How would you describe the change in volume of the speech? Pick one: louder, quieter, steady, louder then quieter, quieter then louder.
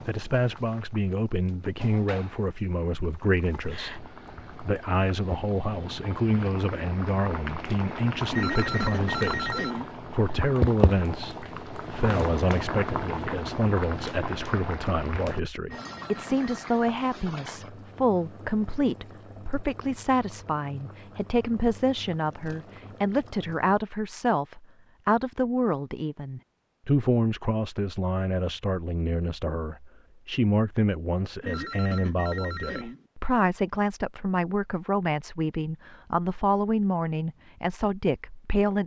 steady.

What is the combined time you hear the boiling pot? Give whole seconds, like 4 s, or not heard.
24 s.